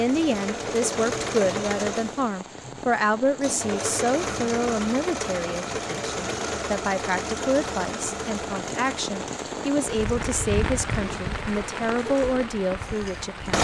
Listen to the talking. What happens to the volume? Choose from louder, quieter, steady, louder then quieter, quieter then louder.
steady.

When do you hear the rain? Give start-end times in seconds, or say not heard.
0.0-13.5.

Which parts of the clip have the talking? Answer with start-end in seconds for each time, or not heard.
0.0-13.5.